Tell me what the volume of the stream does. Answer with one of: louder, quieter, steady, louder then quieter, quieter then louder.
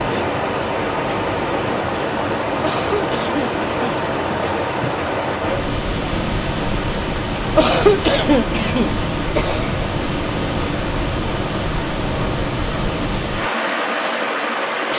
steady.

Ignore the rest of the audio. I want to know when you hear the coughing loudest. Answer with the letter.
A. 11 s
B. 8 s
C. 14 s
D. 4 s
B.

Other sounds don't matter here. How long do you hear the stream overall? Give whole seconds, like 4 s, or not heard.
15 s.